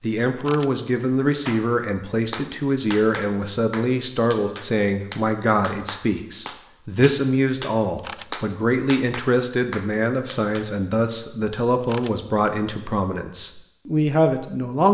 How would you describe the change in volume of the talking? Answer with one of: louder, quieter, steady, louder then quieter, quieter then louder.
steady.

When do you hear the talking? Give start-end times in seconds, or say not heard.
0.0-14.8.